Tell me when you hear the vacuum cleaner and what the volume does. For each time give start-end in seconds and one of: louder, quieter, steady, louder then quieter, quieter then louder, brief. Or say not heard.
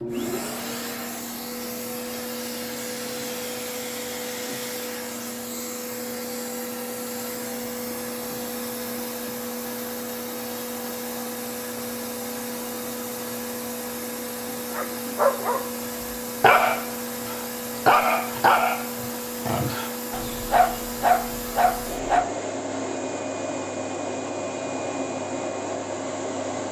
0.0-26.6 steady.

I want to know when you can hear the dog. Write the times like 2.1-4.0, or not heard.
14.8-15.6, 16.4-22.2.